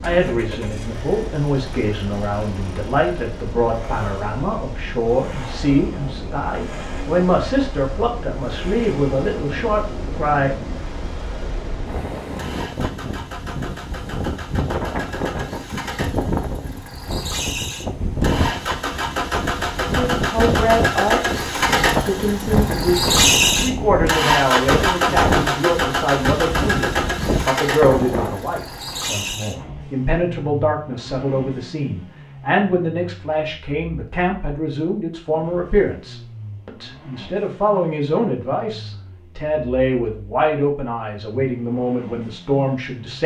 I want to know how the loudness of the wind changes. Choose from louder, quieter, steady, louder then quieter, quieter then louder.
louder.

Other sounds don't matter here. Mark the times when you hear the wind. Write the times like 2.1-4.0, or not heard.
0.0-28.4.